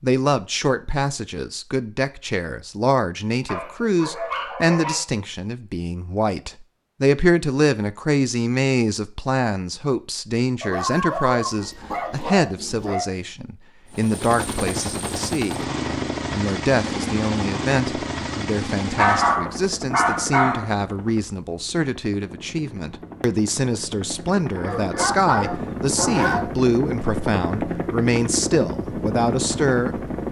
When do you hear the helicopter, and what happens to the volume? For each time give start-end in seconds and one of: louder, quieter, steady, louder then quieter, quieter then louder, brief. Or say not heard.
13.9-30.2 quieter then louder.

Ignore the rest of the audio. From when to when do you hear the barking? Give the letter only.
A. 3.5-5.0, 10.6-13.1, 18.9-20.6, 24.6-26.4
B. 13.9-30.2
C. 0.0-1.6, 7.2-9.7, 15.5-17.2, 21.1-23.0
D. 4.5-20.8
A.